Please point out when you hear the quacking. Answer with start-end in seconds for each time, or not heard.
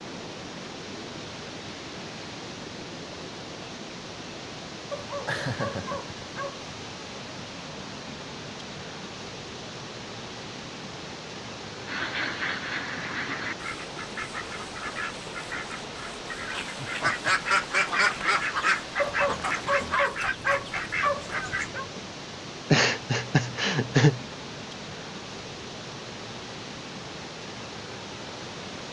11.8-21.7.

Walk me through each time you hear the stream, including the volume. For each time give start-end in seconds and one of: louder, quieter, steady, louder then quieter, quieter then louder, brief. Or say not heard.
0.0-28.8 steady.